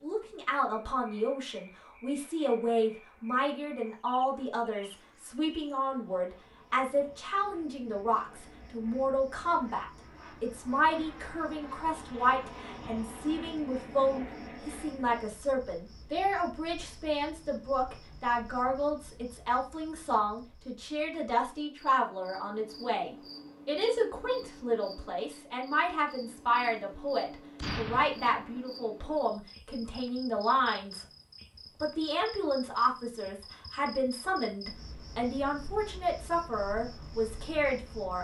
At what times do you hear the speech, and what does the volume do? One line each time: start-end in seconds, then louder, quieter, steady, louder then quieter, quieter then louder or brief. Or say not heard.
0.0-31.1 steady
31.8-38.1 steady.